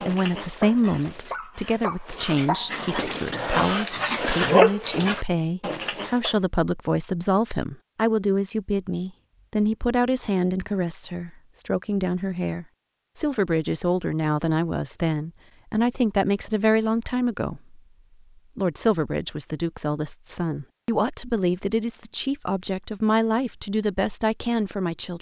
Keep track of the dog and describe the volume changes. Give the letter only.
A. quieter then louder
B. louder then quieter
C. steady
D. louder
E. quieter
B.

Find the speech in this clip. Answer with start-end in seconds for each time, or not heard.
0.1-17.8, 18.6-25.1.